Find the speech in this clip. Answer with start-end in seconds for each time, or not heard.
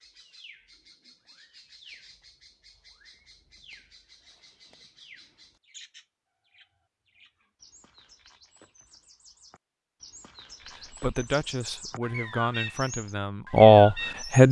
10.8-14.4.